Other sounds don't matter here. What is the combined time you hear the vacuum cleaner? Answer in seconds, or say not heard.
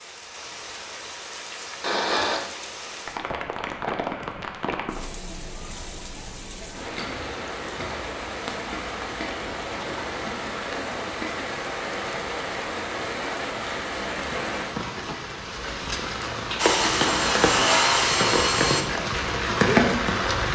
2 s.